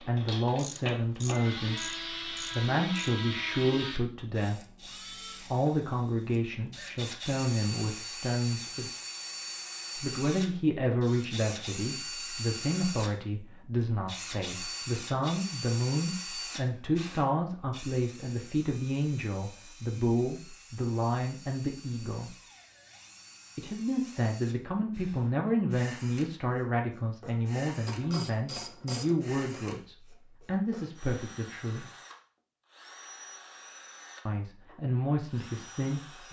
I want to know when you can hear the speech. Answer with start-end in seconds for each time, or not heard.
0.0-8.9, 9.9-22.4, 23.6-31.9, 34.2-36.2.